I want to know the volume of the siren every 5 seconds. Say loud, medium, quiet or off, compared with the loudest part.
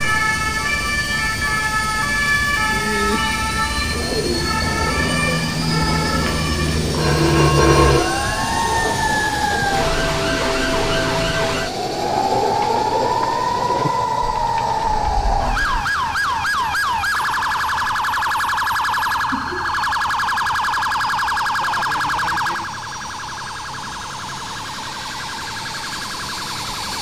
loud, loud, loud, loud, loud, medium.